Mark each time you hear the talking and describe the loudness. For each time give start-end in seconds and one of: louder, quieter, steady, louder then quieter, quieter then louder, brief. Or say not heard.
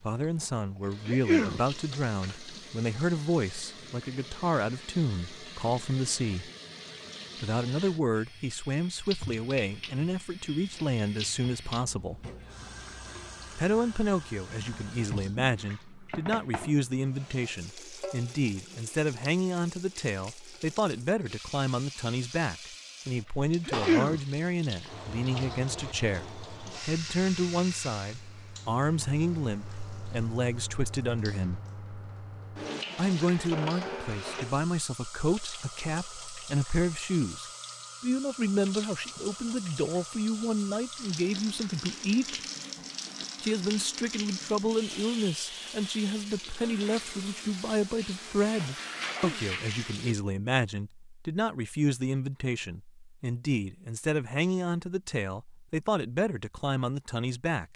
0.0-6.5 steady
7.4-12.2 steady
13.6-31.6 steady
33.0-42.4 steady
43.4-57.7 steady.